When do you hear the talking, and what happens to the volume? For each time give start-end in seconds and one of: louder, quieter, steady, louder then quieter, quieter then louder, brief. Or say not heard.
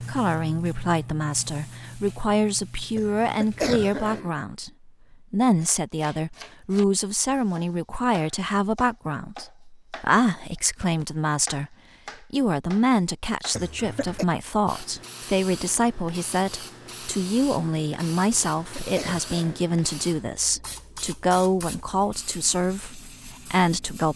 0.0-11.7 steady
12.3-24.1 steady.